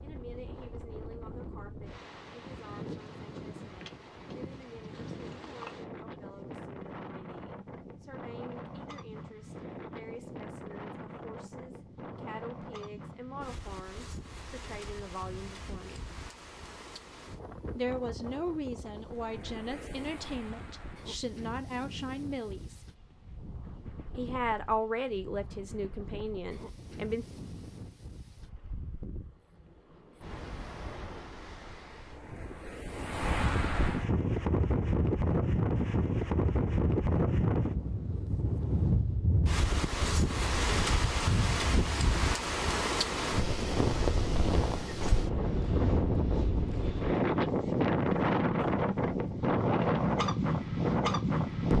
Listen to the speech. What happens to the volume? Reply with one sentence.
The volume of the speech goes up.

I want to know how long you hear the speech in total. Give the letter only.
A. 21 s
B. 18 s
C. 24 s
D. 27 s
C.